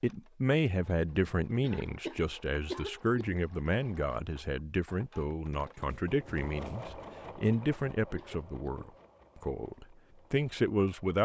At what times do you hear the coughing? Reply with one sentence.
You can hear the coughing from 1.6 to 3.4 s and from 7.3 to 8.9 s.